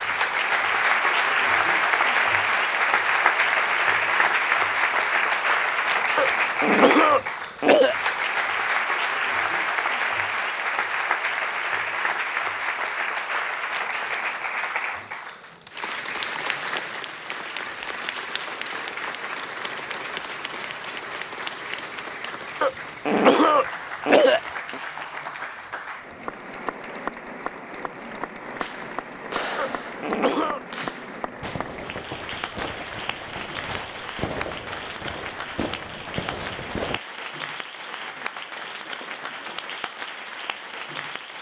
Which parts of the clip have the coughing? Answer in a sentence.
You can hear the coughing from 6.2 to 8.0 s, from 22.6 to 24.8 s and from 29.6 to 30.6 s.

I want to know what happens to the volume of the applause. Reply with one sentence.
The loudness of the applause goes down.